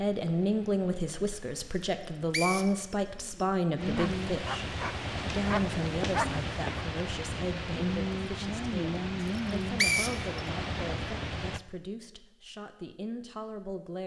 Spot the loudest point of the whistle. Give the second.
10 s.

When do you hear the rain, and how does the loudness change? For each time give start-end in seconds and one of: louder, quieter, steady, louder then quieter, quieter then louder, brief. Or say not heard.
0.1-11.6 louder.